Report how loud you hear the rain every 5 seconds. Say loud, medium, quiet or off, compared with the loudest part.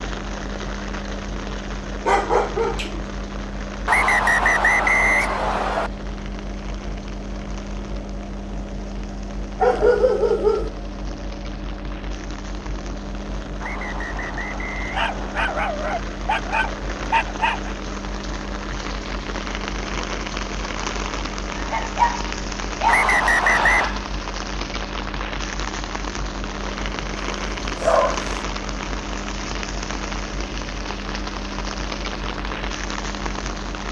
medium, quiet, medium, loud, loud, loud, loud.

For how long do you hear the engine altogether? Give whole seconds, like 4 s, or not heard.
34 s.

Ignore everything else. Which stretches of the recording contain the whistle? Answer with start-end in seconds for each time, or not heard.
3.9-5.9, 13.6-15.4, 22.9-23.9.